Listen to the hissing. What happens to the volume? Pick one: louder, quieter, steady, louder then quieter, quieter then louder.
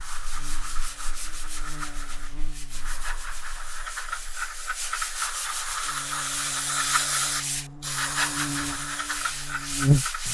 louder.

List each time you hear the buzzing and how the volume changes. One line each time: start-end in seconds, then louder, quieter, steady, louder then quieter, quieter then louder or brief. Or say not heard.
0.0-10.2 quieter then louder.